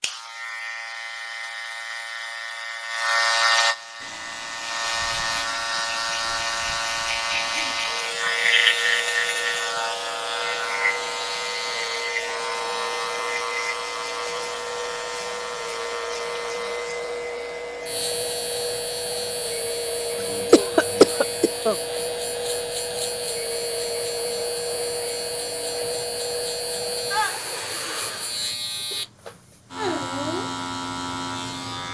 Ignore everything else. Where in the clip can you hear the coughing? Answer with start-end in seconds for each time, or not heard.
20.3-21.8.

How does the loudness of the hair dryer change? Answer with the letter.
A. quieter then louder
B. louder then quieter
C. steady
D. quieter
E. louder
E.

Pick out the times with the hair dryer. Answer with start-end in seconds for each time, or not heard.
4.0-28.6.